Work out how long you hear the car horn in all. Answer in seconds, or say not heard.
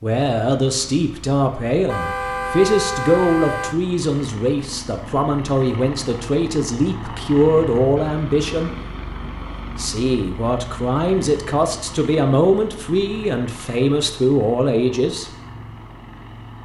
2 s.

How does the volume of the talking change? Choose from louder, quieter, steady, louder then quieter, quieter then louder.
steady.